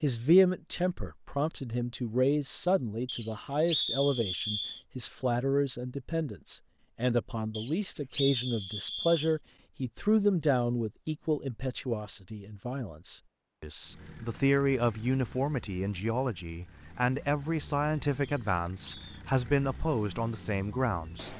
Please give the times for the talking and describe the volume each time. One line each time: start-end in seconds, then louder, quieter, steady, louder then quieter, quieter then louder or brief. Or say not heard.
0.0-21.3 steady.